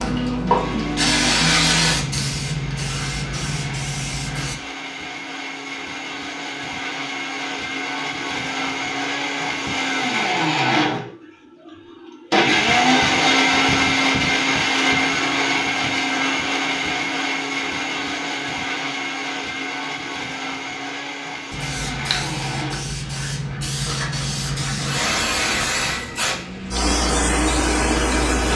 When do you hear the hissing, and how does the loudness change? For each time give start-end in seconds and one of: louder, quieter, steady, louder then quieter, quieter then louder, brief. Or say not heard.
0.0-4.6 quieter
21.5-28.5 louder.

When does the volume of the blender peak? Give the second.
13 s.